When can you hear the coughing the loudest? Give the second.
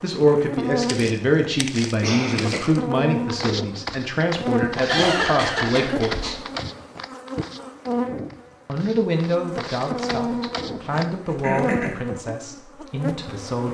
5 s.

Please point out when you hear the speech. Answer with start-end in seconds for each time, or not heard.
0.0-6.5, 8.7-13.6.